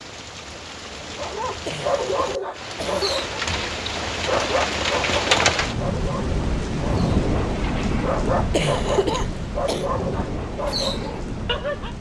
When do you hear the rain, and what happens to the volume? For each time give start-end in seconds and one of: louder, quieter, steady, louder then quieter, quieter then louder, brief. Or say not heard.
0.0-11.9 louder then quieter.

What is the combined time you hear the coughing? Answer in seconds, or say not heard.
3 s.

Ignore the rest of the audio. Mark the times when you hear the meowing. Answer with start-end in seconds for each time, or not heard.
not heard.